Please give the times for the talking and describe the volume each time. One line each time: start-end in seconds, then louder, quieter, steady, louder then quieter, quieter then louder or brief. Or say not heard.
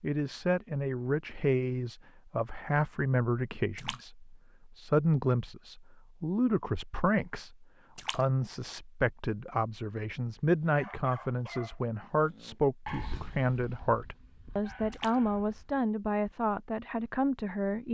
0.0-17.8 steady.